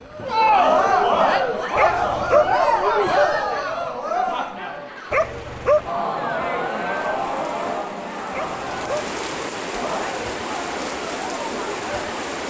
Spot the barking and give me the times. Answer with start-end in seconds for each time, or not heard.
1.8-2.5, 5.1-5.9, 8.3-9.1.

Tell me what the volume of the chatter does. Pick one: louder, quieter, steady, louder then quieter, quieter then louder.
quieter.